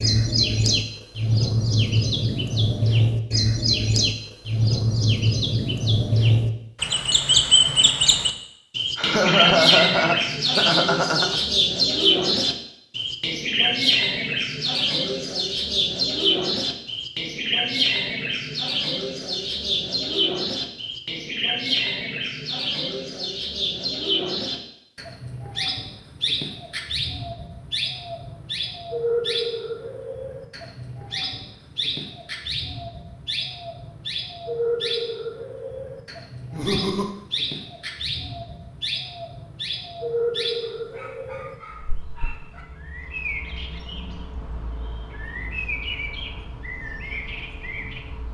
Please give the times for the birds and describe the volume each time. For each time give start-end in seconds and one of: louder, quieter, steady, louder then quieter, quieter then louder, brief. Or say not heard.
0.0-48.2 quieter.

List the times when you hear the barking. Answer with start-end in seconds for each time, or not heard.
40.8-42.6.